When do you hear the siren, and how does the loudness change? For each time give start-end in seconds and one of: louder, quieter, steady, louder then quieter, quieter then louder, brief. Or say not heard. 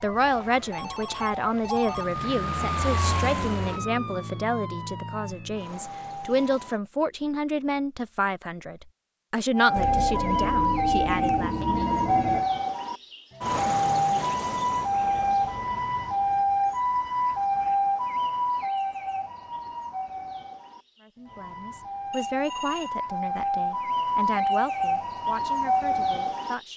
0.0-6.8 louder then quieter
9.5-26.7 quieter then louder.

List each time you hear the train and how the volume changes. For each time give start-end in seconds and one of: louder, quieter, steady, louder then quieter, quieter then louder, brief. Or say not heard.
not heard.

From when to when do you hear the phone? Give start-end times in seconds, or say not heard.
0.1-2.0, 9.8-12.4, 22.1-22.9.